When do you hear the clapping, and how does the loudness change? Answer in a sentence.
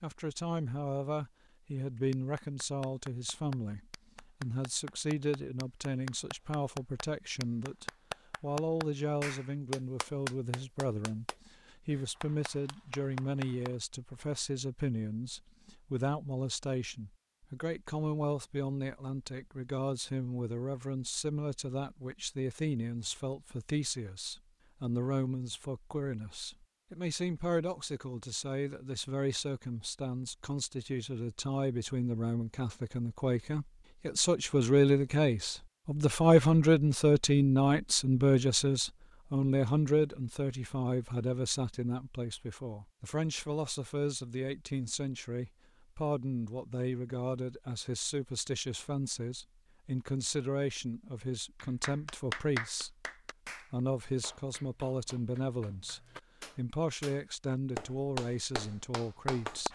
You can hear the clapping from 1.9 to 13.8 s, getting louder then quieter; and from 51.6 to 59.7 s, getting quieter then louder.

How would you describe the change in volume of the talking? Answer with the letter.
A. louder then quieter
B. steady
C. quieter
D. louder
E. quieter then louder
A.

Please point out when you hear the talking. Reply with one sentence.
You can hear the talking from 0.0 to 53.0 s and from 53.7 to 59.7 s.